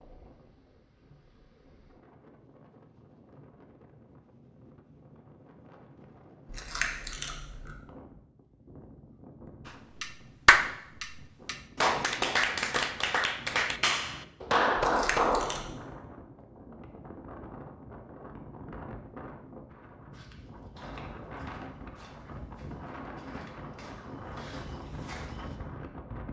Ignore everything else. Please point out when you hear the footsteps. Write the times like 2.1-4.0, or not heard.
20.1-25.6.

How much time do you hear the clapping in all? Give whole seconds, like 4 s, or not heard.
6 s.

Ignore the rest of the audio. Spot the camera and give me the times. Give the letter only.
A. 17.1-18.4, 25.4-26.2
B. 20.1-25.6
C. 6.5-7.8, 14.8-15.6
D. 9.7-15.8
C.